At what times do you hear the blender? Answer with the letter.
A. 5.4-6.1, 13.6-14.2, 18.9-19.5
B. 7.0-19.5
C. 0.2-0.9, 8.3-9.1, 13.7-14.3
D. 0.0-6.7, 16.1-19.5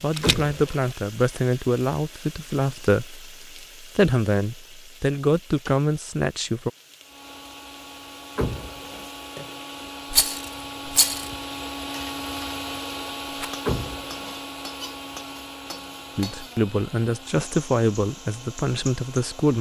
B.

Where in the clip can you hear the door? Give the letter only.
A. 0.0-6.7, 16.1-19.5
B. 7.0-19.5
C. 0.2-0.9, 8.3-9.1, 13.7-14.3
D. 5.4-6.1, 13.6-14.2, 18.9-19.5
C.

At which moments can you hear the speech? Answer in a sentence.
You can hear the speech from 0.0 to 6.7 s and from 16.1 to 19.5 s.